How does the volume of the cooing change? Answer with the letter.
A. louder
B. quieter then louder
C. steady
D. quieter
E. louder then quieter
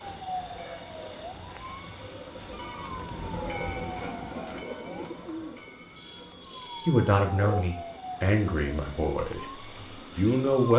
A.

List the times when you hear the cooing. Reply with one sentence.
The cooing can be heard from 0.0 to 5.9 s.